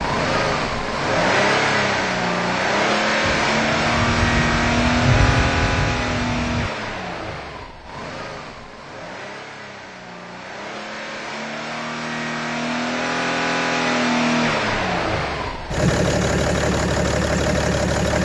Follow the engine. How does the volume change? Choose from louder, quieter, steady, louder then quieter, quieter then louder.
quieter then louder.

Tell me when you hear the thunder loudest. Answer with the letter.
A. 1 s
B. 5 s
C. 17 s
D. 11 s
B.